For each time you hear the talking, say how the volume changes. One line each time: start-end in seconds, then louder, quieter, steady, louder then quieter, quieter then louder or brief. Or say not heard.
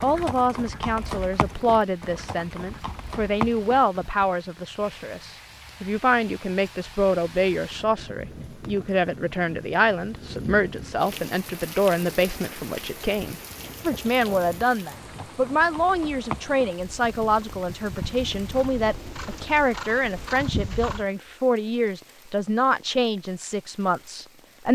0.0-24.6 steady.